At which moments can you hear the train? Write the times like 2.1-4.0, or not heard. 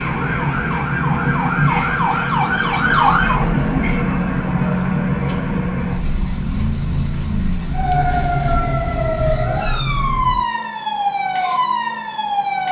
0.0-10.4.